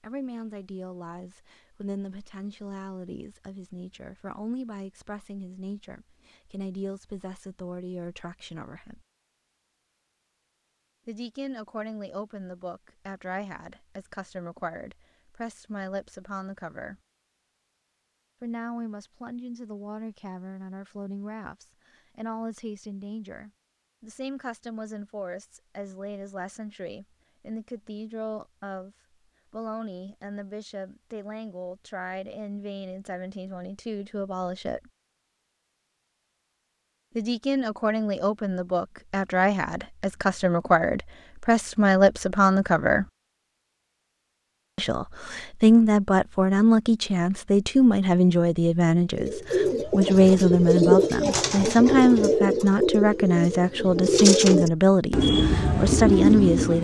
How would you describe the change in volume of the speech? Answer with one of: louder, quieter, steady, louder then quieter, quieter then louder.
louder.